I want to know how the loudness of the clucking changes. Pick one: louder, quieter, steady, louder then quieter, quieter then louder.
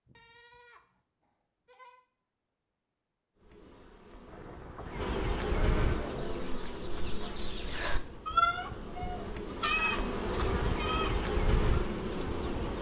louder then quieter.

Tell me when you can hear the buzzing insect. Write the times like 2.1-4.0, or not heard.
3.4-12.7.